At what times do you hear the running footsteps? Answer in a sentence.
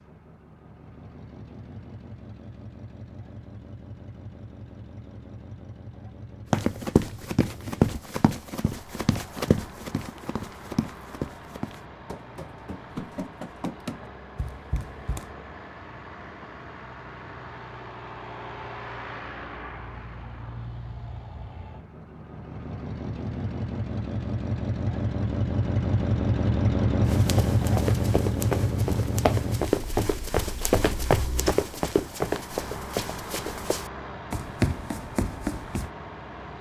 The running footsteps can be heard from 6.5 to 15.2 s and from 27.0 to 35.9 s.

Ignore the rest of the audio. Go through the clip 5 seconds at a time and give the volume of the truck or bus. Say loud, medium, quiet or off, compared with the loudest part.
quiet, quiet, quiet, quiet, medium, loud, quiet, quiet.